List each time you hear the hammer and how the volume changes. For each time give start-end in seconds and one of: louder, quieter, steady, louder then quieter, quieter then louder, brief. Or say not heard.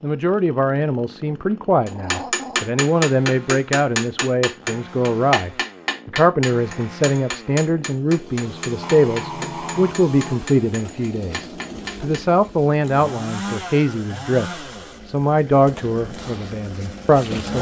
1.9-12.5 quieter.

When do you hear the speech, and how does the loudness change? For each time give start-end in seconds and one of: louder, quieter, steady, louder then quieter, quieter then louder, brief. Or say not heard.
0.0-17.5 steady.